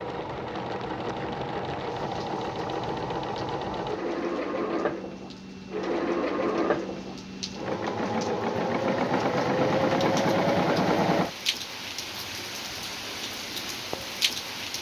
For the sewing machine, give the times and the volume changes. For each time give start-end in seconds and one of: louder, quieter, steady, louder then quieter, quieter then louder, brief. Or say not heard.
0.0-11.3 louder.